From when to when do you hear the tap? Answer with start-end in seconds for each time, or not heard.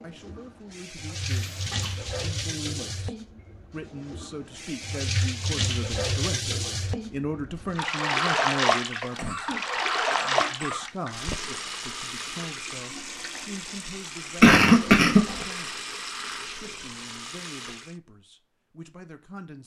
0.0-17.9.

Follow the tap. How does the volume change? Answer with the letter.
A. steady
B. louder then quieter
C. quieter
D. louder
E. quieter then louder
B.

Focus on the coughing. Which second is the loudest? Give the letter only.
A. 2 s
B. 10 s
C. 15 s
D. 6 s
C.